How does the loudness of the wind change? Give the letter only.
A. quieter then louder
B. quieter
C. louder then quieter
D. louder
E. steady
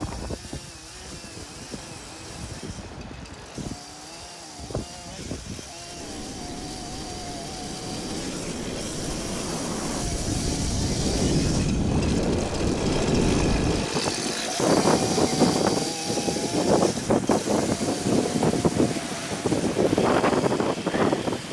D.